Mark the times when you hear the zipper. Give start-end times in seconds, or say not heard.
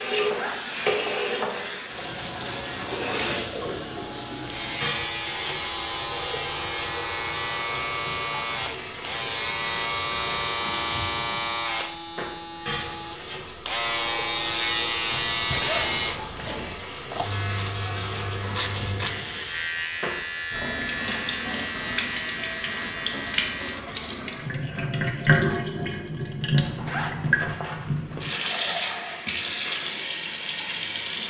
0.2-1.4, 15.1-16.8, 26.6-28.3.